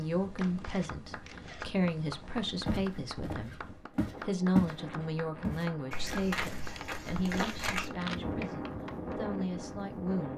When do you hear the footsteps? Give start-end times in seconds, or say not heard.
2.6-4.8, 5.4-7.9.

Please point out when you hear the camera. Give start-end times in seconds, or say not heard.
0.3-1.7, 6.8-8.2.